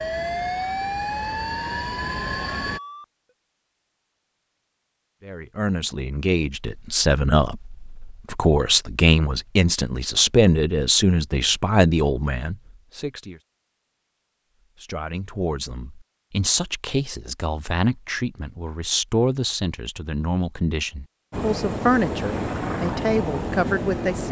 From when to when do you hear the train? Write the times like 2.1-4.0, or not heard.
0.0-2.8, 21.3-24.2.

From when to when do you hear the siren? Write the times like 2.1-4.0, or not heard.
0.0-3.0.